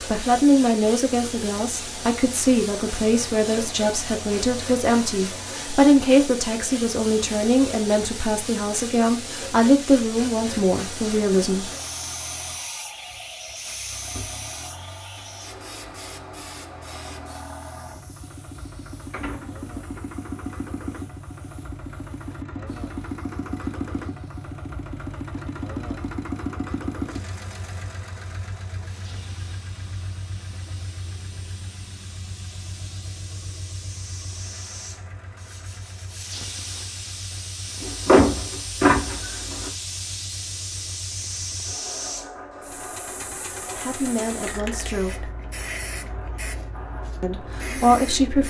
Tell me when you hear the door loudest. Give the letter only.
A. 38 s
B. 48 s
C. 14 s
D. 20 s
A.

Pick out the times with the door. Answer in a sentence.
The door can be heard from 12.7 to 14.3 s, from 19.1 to 20.0 s and from 37.8 to 39.7 s.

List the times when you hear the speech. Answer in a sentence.
The speech can be heard from 0.0 to 11.7 s, from 43.8 to 45.3 s and from 47.2 to 48.4 s.